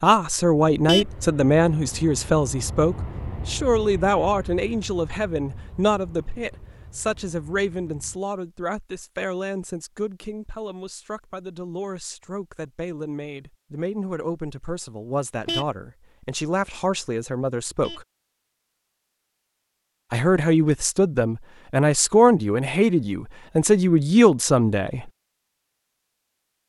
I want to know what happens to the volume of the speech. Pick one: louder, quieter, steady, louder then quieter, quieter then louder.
quieter then louder.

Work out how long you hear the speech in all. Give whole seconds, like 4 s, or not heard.
23 s.